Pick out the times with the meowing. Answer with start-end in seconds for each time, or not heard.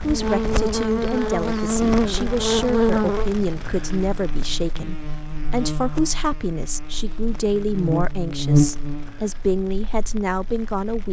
not heard.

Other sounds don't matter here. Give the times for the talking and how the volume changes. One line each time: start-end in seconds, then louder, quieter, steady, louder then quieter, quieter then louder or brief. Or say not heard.
0.0-11.0 steady.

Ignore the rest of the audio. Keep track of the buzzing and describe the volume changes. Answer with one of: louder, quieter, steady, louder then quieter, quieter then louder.
quieter then louder.